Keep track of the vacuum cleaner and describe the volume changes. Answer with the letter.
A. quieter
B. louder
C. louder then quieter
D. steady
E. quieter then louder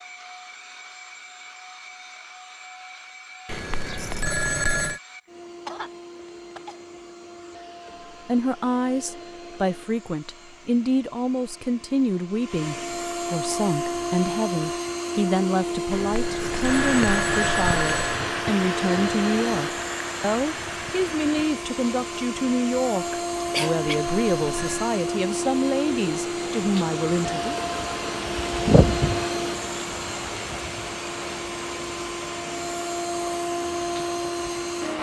B.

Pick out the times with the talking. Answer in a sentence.
The talking can be heard from 8.2 to 27.6 s.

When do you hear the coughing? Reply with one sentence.
The coughing can be heard from 5.7 to 6.8 s and from 22.9 to 24.0 s.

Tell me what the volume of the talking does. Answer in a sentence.
The loudness of the talking stays about the same.